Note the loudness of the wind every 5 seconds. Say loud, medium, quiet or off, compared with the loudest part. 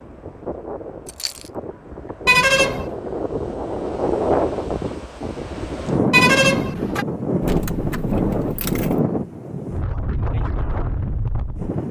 loud, loud, medium.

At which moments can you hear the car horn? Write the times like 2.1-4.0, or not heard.
2.2-2.9, 6.1-7.0.